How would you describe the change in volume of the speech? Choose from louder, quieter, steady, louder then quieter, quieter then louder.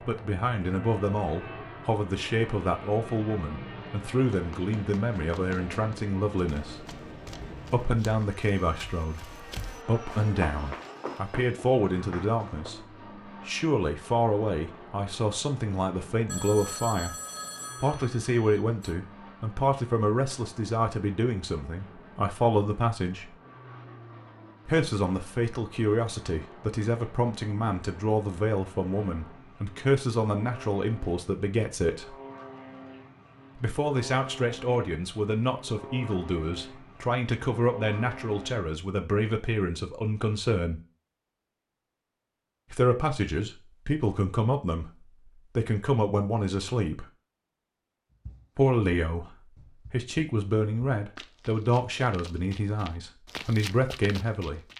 steady.